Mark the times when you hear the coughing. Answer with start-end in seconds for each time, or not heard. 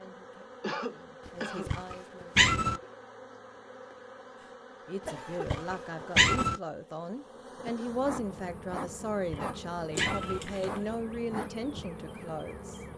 0.6-1.8, 4.4-5.8, 9.9-10.8.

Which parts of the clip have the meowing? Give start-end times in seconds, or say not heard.
1.6-2.8, 5.5-6.6, 9.2-10.4.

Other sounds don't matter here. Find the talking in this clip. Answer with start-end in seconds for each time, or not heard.
0.0-2.5, 4.8-12.8.